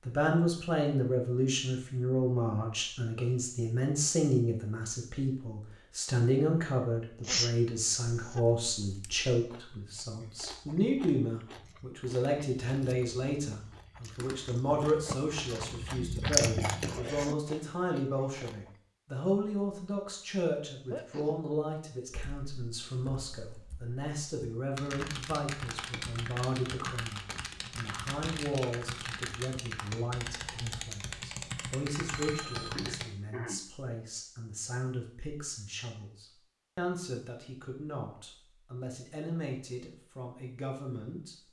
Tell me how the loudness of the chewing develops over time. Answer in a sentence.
The loudness of the chewing goes up, then down.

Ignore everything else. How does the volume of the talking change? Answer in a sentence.
The volume of the talking goes down.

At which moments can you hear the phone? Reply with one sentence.
You can hear the phone from 32.1 to 32.8 s.